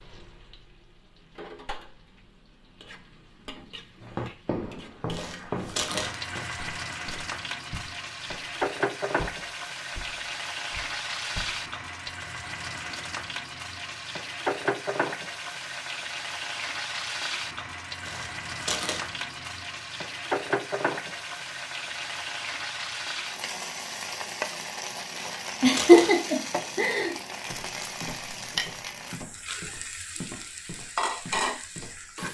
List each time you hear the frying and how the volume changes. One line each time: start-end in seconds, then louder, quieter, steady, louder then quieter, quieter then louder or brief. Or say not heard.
0.0-32.2 louder.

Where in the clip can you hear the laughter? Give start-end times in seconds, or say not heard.
25.6-27.1.